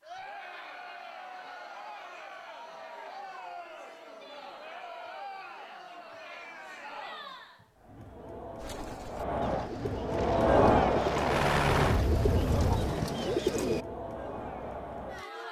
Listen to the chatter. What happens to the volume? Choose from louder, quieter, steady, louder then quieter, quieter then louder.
louder then quieter.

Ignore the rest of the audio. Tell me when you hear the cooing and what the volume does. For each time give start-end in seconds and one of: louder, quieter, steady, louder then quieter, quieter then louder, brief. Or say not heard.
8.6-13.8 louder.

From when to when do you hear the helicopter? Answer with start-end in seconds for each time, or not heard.
10.1-13.0.